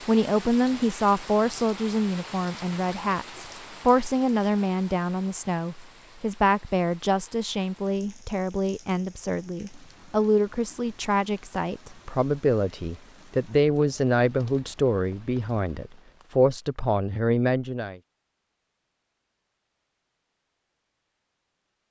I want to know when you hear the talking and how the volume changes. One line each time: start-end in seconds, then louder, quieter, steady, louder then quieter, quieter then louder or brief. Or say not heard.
0.1-18.0 steady.